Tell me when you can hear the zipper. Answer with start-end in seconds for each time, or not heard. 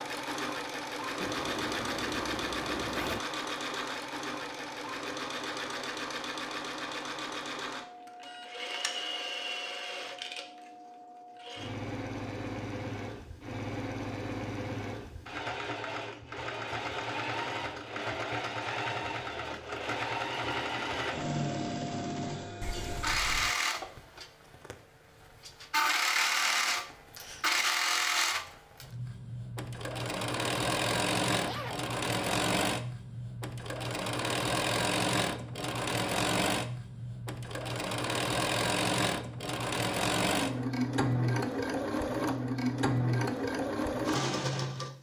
1.2-3.2, 22.6-23.6, 31.4-31.9.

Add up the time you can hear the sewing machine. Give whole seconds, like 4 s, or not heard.
45 s.